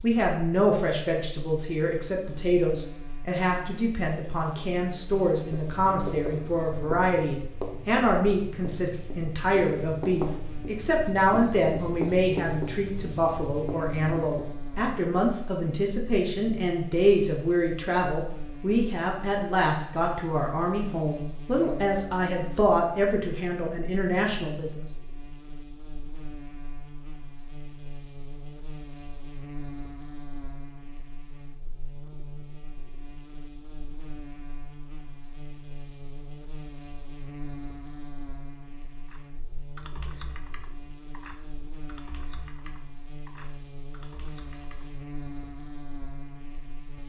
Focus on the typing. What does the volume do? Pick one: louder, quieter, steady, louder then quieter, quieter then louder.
quieter.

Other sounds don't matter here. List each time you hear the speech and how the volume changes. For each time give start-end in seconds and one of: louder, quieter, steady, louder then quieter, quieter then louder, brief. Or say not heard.
0.0-24.9 steady.